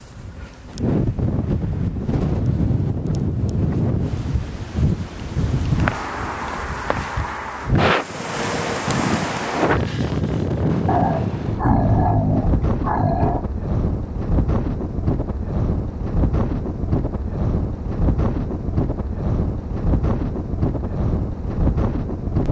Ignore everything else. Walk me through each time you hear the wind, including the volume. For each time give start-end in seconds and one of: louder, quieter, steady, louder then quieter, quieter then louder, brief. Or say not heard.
0.0-22.4 steady.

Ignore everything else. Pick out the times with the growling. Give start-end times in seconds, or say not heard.
10.8-13.4.